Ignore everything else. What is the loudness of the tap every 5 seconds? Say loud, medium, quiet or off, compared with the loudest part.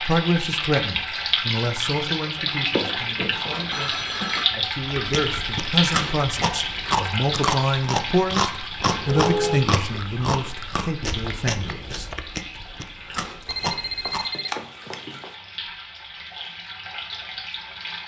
loud, loud, quiet, medium.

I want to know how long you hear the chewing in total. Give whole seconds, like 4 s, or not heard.
9 s.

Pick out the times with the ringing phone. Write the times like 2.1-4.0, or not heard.
2.7-4.5, 9.1-9.7, 13.4-15.3.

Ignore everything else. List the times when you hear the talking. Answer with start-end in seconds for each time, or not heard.
0.0-12.1.